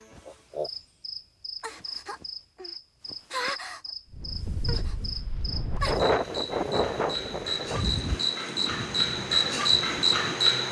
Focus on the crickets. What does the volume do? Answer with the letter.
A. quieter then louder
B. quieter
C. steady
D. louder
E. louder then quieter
D.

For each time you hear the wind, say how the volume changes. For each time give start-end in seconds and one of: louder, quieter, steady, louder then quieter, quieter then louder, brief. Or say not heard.
4.1-10.6 louder then quieter.